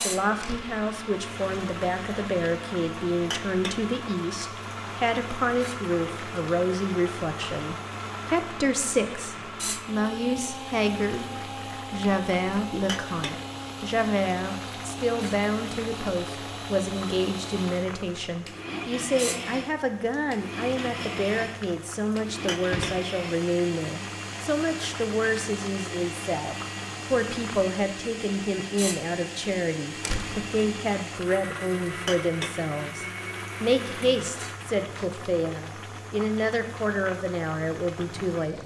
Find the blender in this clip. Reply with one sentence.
You can hear the blender from 0.0 to 35.1 s.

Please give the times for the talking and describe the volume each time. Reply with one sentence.
The talking can be heard from 0.0 to 11.2 s, at a steady volume; and from 11.9 to 38.6 s, at a steady volume.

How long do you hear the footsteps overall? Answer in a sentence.
The footsteps can't be heard in this clip.